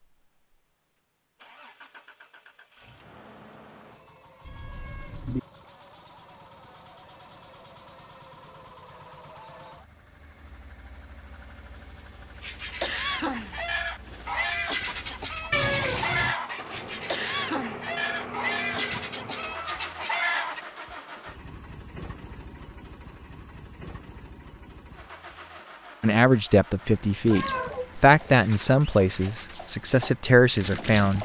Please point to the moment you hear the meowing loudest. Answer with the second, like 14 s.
16 s.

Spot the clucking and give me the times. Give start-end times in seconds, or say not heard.
12.4-20.6, 27.2-31.2.